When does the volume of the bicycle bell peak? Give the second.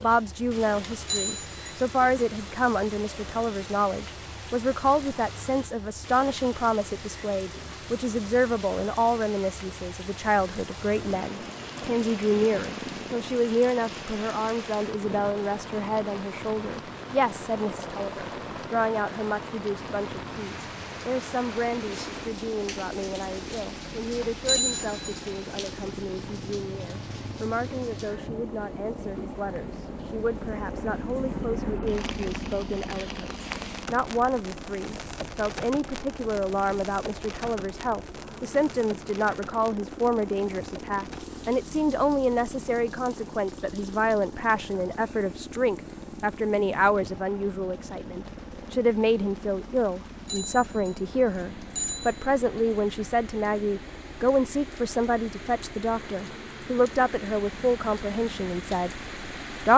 25 s.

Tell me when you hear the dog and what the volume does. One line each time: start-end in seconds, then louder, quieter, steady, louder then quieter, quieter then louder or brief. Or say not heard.
not heard.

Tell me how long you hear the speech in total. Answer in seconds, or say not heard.
60 s.